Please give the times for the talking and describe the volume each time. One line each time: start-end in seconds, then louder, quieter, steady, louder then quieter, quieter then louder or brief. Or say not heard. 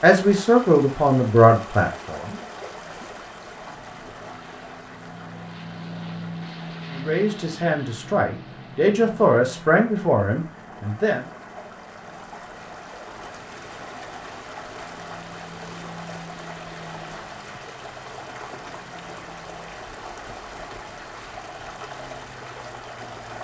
0.0-2.4 brief
6.9-11.2 louder then quieter.